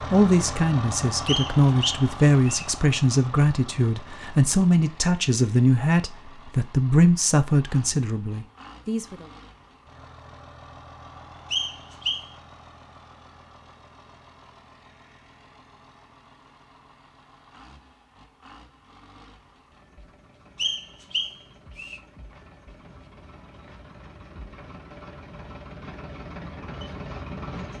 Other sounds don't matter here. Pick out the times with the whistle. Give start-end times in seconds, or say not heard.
1.2-2.6, 11.5-12.3, 20.6-22.0.